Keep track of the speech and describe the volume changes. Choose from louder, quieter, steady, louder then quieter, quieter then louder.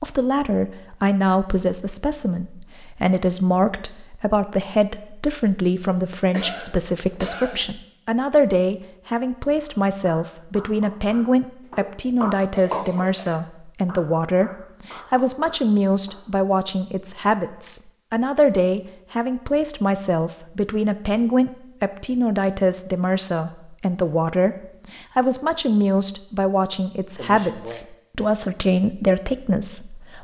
steady.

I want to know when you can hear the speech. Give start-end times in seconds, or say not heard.
0.0-30.1.